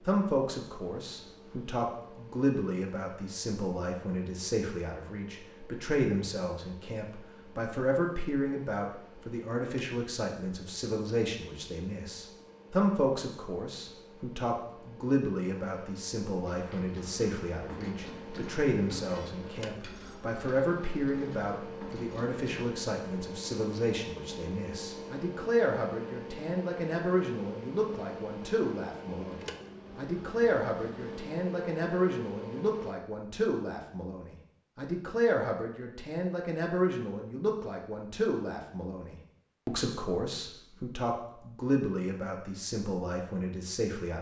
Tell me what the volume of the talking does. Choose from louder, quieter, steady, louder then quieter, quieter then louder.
steady.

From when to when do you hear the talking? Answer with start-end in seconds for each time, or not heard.
0.1-44.1.